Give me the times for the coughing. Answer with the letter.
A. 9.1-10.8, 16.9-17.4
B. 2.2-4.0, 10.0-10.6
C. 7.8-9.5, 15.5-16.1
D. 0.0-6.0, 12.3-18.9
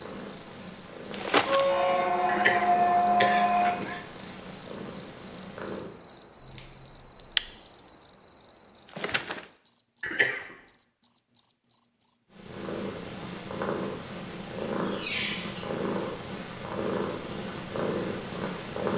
B.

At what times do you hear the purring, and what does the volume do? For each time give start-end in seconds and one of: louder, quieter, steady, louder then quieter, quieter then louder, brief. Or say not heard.
0.0-6.0 steady
12.3-18.9 steady.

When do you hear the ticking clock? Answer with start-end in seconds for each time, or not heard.
not heard.